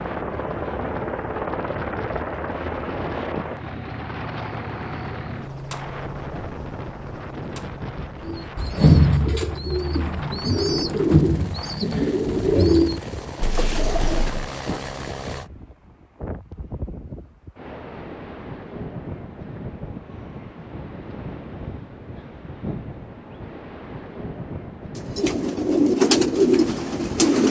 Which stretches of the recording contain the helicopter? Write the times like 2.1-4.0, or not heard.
0.0-15.5.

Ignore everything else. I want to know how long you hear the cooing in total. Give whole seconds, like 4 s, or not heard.
9 s.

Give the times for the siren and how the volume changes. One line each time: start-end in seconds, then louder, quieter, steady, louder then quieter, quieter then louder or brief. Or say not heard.
not heard.